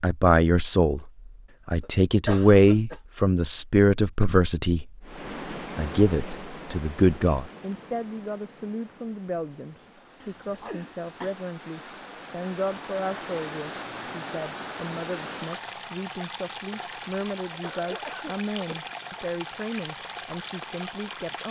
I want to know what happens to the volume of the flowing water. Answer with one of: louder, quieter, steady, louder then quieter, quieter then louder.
quieter then louder.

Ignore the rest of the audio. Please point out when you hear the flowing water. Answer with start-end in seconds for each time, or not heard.
5.0-21.4.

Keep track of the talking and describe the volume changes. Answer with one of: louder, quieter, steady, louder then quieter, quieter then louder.
quieter.